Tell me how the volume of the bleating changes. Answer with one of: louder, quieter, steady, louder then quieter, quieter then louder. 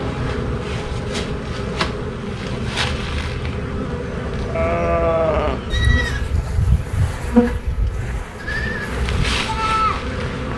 quieter then louder.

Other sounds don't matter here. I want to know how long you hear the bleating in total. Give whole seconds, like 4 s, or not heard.
6 s.